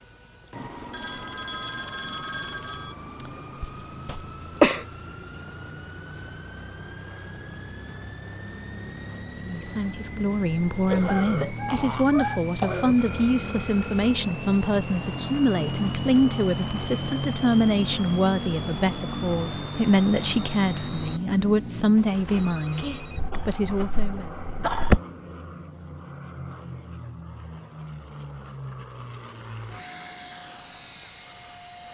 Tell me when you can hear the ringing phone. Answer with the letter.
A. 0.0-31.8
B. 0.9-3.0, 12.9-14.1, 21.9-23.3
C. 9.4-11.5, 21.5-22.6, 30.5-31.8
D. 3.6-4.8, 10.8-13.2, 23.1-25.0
B.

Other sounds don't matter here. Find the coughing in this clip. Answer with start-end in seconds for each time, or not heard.
3.6-4.8, 10.8-13.2, 23.1-25.0.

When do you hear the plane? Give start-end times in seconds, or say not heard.
0.0-31.8.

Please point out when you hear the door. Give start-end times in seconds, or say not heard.
not heard.